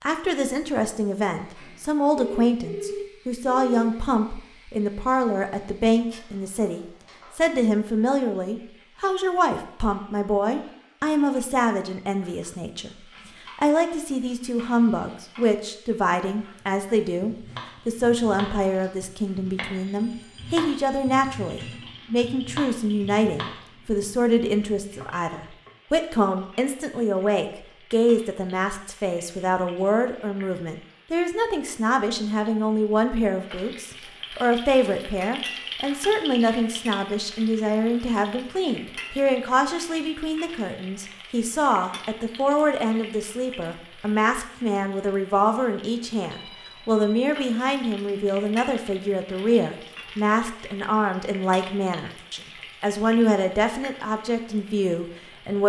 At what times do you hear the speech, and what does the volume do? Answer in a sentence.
You can hear the speech from 0.0 to 55.6 s, at a steady volume.